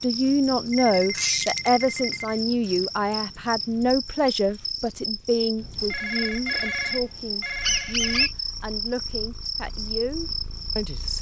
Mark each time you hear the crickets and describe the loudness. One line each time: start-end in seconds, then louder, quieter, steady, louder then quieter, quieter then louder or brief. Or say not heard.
0.0-11.1 steady.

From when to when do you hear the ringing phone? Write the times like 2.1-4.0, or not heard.
0.7-2.4, 5.8-8.3.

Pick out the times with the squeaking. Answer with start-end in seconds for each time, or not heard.
1.1-1.7, 7.6-8.3.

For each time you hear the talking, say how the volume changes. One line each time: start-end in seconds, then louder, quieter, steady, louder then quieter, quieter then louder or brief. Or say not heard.
0.0-11.1 quieter.